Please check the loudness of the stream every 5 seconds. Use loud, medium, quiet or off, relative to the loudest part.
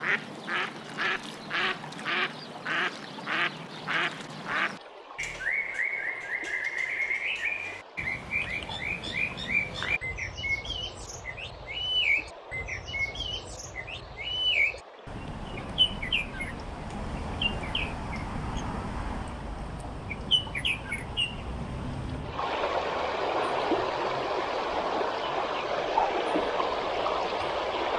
quiet, quiet, quiet, quiet, loud, loud.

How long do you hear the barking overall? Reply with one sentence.
You can't hear the barking here.